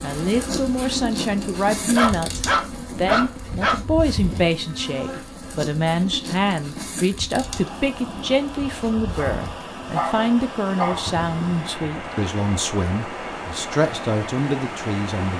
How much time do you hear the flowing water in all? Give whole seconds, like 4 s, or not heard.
8 s.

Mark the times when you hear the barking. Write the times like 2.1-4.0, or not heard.
1.8-3.8, 9.2-11.2.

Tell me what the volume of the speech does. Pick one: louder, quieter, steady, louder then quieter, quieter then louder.
steady.